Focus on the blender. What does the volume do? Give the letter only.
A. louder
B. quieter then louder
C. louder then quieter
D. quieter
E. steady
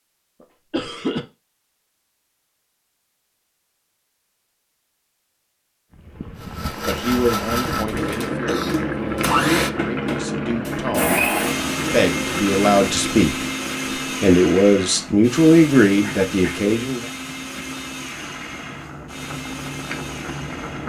D.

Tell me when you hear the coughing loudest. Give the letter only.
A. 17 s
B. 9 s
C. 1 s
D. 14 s
C.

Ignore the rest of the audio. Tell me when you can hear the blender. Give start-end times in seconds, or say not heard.
6.3-20.8.